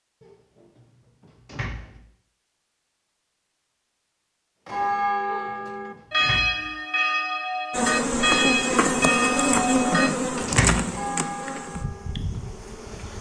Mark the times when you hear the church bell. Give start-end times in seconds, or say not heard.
4.7-12.2.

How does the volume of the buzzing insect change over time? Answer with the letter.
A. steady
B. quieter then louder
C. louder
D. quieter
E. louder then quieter
D.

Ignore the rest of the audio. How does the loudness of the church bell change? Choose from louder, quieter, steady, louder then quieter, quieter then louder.
quieter.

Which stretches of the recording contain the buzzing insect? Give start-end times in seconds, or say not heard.
7.7-13.1.